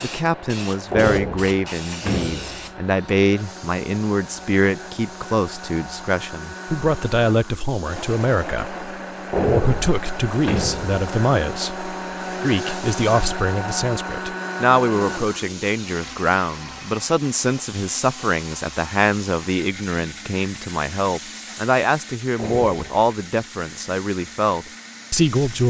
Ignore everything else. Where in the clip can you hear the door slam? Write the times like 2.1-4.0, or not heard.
0.9-2.7, 9.3-11.0, 22.4-23.1.